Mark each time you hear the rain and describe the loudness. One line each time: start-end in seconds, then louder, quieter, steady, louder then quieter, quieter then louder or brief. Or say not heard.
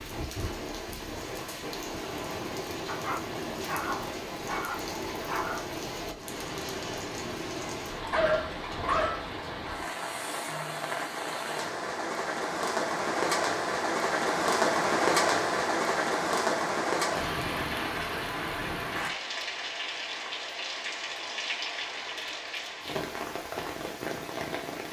0.0-24.8 louder then quieter.